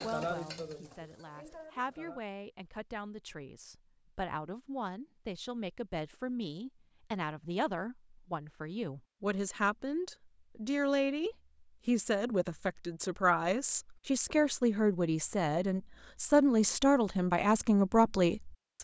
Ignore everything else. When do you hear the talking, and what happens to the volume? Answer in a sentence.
You can hear the talking from 0.0 to 18.7 s, getting louder.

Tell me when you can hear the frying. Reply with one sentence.
You can hear the frying from 0.0 to 2.2 s.